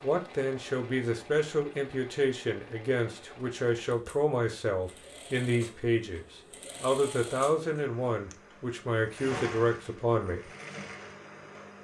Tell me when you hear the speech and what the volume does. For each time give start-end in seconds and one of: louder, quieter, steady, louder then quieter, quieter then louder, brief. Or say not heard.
0.0-10.5 steady.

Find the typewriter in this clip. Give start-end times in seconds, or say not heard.
not heard.